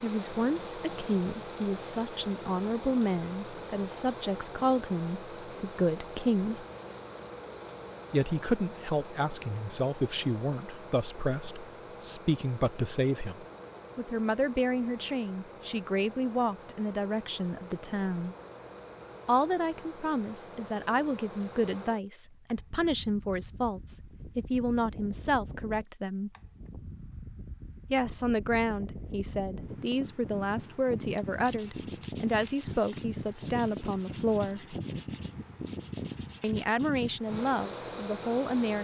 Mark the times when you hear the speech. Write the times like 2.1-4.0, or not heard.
0.0-6.7, 8.1-18.4, 19.2-26.3, 27.9-34.8, 36.4-38.7.